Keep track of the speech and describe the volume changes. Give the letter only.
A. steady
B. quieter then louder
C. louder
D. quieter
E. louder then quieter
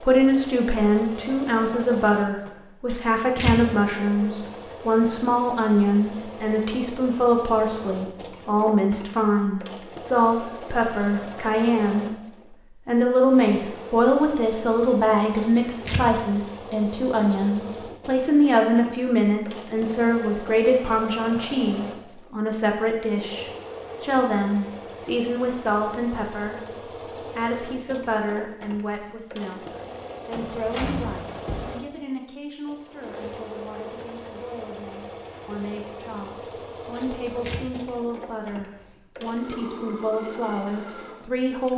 D.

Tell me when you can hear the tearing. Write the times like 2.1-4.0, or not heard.
2.9-3.5, 15.3-16.0, 37.0-37.6.